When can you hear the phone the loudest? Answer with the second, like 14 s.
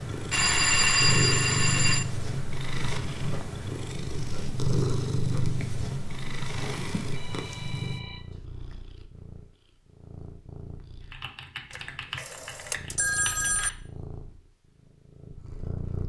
1 s.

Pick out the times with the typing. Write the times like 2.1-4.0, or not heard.
11.0-13.8.